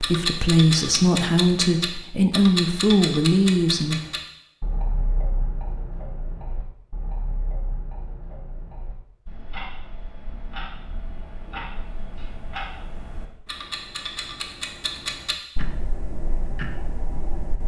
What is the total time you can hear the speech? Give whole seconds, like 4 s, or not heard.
4 s.